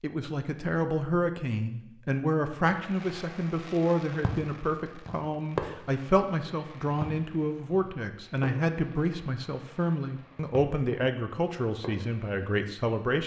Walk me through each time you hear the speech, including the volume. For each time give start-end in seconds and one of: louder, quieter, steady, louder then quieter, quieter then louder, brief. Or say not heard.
0.0-13.2 steady.